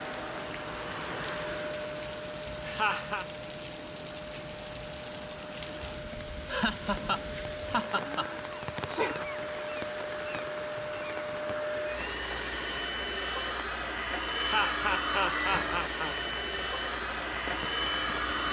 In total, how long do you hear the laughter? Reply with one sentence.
The laughter can be heard for 4 seconds in total.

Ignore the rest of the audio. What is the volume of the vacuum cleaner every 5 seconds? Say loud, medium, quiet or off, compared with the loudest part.
medium, medium, loud, loud.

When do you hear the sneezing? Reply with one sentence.
The sneezing can be heard from 8.0 to 9.3 s.